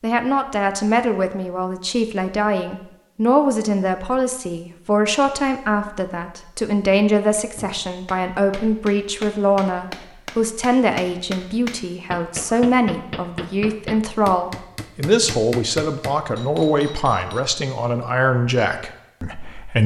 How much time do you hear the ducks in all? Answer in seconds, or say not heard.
not heard.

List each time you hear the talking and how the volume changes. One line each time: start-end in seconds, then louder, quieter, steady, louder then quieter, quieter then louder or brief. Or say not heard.
0.0-19.8 steady.